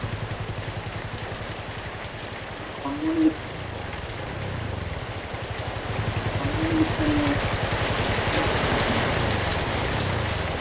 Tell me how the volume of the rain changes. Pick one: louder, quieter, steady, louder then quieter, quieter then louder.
louder.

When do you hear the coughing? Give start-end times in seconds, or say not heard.
2.9-3.4, 6.4-7.4.